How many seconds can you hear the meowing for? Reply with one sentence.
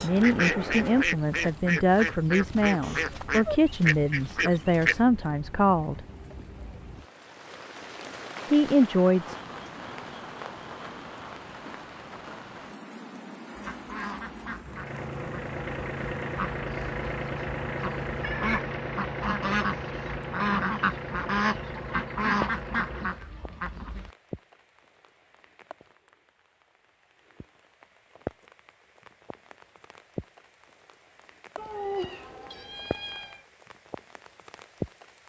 You can hear the meowing for 3 seconds altogether.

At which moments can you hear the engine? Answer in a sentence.
The engine can be heard from 14.7 to 23.2 s.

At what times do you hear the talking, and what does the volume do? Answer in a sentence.
You can hear the talking from 0.0 to 6.0 s, at a steady volume; and briefly from 8.5 to 9.3 s.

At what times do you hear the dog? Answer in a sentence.
You can't hear the dog here.